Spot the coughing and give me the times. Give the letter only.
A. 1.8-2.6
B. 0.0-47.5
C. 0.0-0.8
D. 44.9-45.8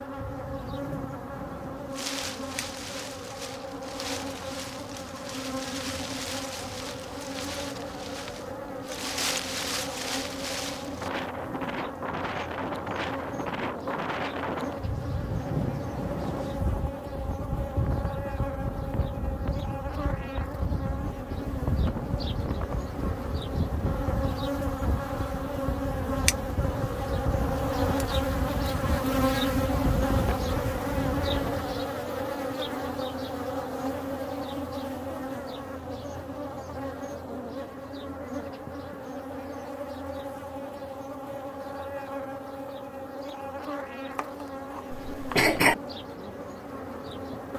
D.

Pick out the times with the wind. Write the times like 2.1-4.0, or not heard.
0.1-31.8.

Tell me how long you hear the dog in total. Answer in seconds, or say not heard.
not heard.